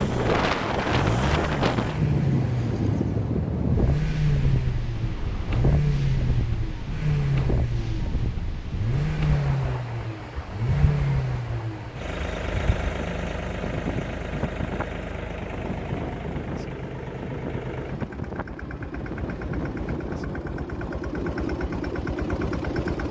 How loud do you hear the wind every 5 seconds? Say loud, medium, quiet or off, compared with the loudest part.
loud, medium, medium, medium, medium.